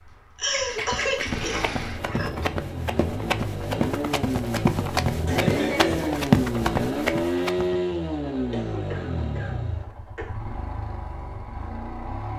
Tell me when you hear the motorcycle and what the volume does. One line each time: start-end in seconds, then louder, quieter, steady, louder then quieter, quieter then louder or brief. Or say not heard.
0.0-12.3 louder then quieter.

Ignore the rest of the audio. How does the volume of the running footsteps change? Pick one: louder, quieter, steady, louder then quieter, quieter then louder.
louder.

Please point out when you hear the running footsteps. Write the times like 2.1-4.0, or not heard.
0.8-7.7.